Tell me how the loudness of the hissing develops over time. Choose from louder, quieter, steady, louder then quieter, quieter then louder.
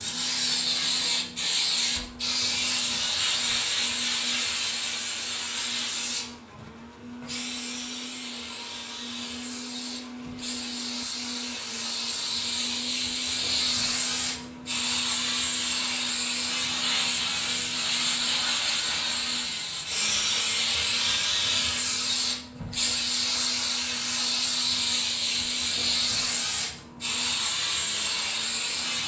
quieter then louder.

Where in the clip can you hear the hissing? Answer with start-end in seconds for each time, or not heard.
0.0-29.0.